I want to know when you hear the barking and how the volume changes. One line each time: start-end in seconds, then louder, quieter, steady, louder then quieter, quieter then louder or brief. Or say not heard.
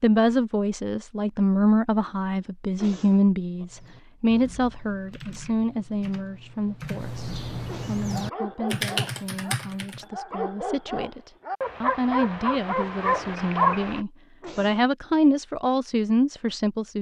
8.0-14.0 louder.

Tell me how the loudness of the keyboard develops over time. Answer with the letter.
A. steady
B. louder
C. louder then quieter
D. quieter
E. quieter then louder
B.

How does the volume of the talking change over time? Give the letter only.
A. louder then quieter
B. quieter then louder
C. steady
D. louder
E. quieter
B.